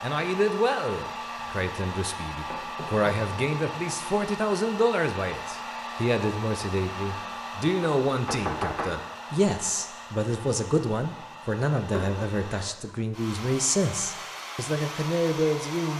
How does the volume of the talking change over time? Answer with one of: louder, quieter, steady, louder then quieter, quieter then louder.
steady.